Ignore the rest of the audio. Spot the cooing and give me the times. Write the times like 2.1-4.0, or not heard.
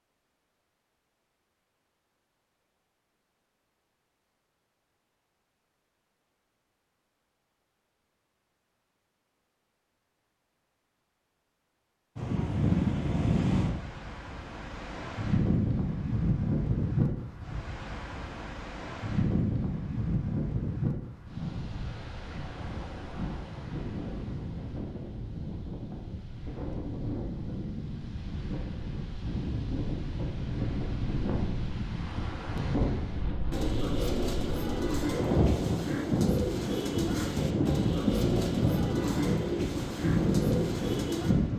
33.5-41.4.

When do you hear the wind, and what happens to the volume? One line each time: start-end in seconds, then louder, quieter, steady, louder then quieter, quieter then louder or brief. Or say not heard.
12.2-41.5 quieter then louder.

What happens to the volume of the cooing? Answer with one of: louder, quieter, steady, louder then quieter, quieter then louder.
steady.